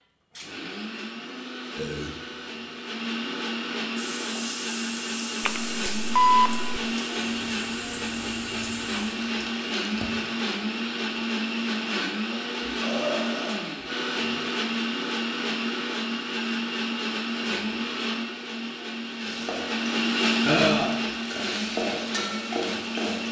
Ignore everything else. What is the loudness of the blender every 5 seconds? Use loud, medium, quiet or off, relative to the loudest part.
medium, loud, loud, loud, loud.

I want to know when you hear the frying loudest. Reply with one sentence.
The volume of the frying peaks at 22 seconds.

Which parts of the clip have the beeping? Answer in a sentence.
You can hear the beeping from 5.4 to 6.8 s.